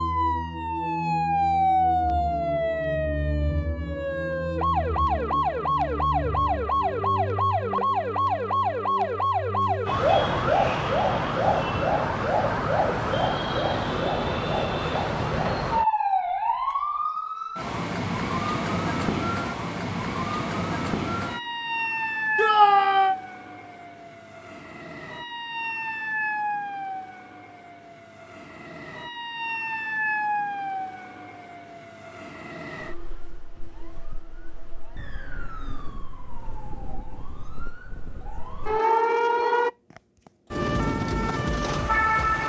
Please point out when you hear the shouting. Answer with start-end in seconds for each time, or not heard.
22.4-23.1.